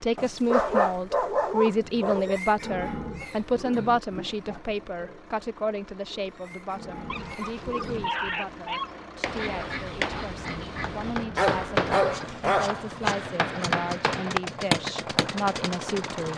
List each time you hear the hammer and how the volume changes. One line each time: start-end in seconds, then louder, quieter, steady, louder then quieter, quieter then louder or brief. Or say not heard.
8.9-15.7 louder.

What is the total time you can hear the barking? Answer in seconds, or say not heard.
6 s.